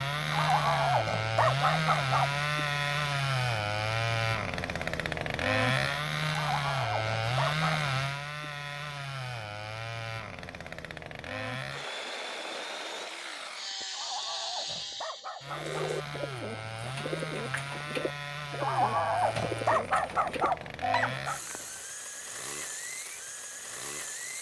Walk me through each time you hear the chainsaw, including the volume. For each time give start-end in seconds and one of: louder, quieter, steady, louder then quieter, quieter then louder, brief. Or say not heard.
0.0-24.3 quieter.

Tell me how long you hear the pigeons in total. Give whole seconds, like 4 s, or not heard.
6 s.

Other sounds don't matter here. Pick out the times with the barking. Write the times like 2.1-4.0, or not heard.
0.3-2.4, 6.3-7.9, 13.9-16.1, 18.6-21.4.